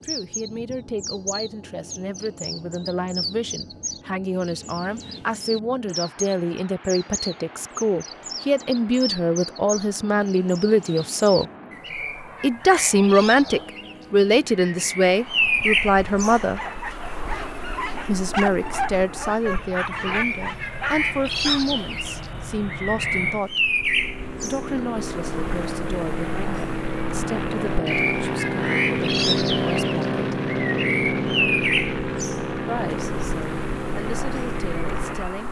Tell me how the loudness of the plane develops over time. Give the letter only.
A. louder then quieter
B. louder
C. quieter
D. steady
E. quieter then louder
B.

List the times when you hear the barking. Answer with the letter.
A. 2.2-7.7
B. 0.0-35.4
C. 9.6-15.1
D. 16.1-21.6
D.